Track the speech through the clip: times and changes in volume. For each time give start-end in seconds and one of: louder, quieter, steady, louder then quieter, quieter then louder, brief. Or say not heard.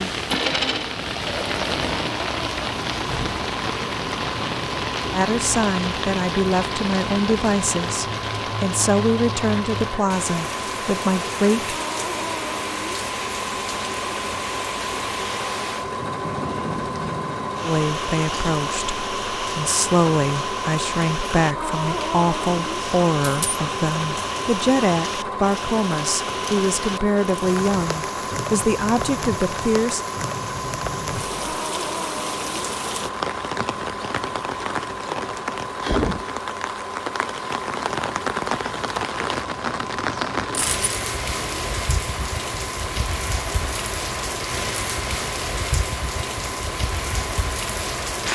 5.1-11.8 steady
17.6-30.0 steady.